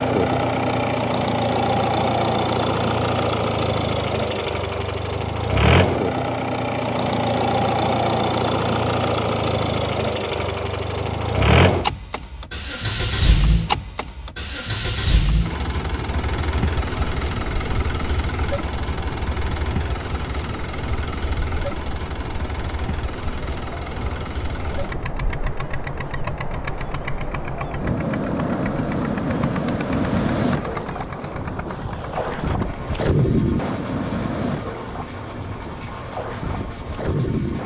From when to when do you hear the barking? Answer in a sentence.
You can't hear the barking here.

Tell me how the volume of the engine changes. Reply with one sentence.
The loudness of the engine goes down.